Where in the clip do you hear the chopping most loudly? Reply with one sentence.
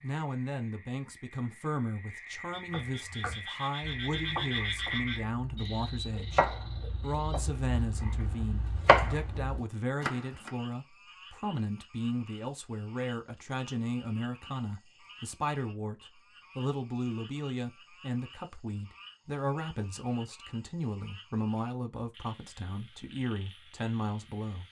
The loudest moment of the chopping is at 9 seconds.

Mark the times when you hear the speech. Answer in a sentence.
You can hear the speech from 0.0 to 24.6 s.